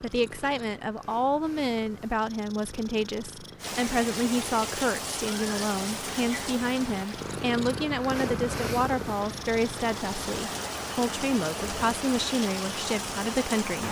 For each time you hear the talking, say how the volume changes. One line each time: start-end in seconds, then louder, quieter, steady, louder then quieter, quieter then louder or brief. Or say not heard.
0.0-13.8 steady.